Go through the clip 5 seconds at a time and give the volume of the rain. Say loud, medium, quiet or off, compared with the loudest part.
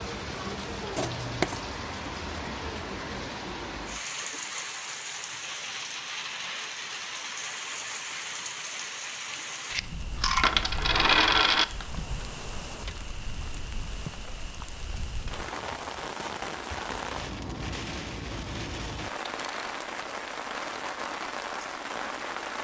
loud, loud, medium, loud, loud.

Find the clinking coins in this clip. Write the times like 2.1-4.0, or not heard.
0.9-1.6, 9.7-11.7, 19.3-19.8.